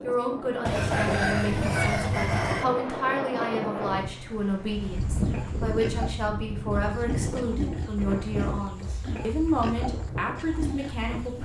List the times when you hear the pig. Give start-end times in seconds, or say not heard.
4.8-11.4.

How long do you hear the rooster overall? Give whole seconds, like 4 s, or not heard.
2 s.